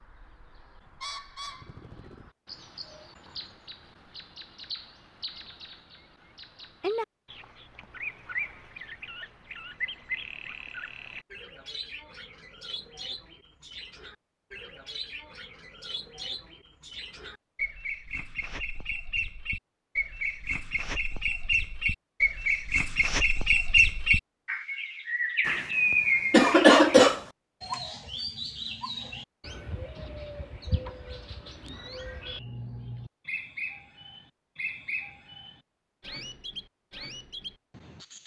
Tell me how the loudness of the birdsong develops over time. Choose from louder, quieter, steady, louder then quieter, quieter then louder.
louder then quieter.